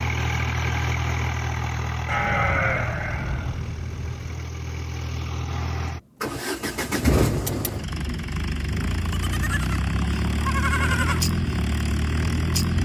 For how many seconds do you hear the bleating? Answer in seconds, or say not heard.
5 s.